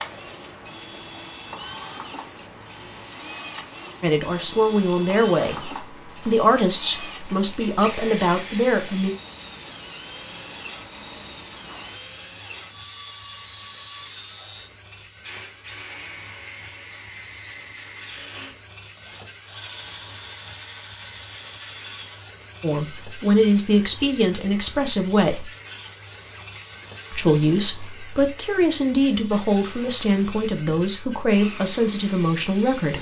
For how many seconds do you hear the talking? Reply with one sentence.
You can hear the talking for 14 seconds altogether.